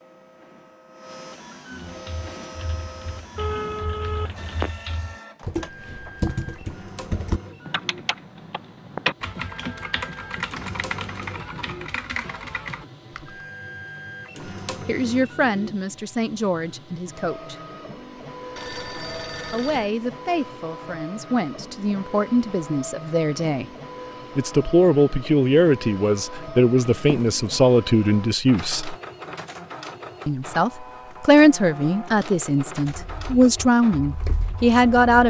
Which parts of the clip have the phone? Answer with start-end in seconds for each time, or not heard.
3.4-4.7, 18.6-19.9, 26.9-27.3.